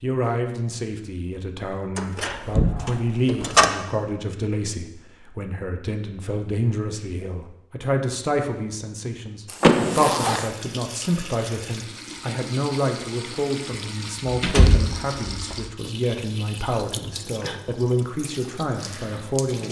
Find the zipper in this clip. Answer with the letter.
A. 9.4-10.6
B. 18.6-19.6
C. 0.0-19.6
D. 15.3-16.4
A.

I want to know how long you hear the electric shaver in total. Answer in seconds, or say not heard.
not heard.